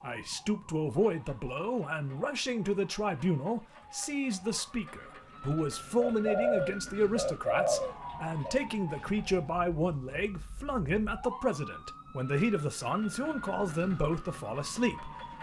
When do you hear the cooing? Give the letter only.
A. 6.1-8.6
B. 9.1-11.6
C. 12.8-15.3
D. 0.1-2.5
A.